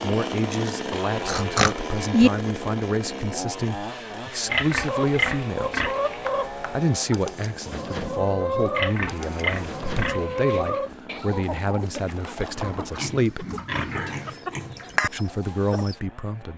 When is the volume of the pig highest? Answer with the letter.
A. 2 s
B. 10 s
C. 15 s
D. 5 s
A.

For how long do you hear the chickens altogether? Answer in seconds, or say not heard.
11 s.